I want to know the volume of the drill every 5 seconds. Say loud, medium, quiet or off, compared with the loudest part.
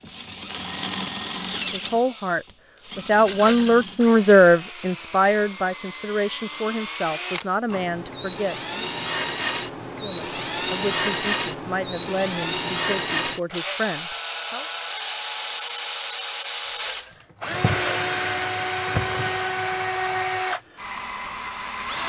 medium, medium, loud, loud, loud.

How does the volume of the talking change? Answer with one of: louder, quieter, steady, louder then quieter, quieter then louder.
quieter.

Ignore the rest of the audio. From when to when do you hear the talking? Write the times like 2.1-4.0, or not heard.
1.7-8.9, 10.0-14.7.